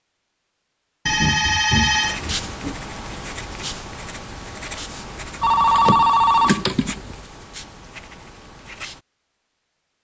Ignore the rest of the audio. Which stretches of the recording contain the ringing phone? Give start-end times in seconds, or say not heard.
1.1-2.8, 5.4-7.2.